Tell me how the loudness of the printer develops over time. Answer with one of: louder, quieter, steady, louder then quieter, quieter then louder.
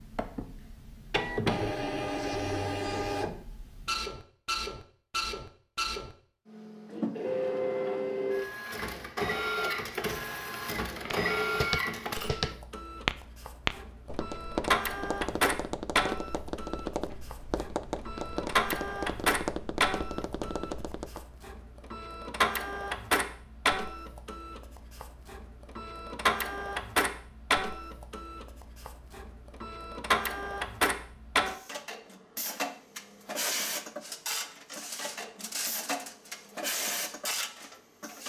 steady.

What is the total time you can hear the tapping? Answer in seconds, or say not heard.
10 s.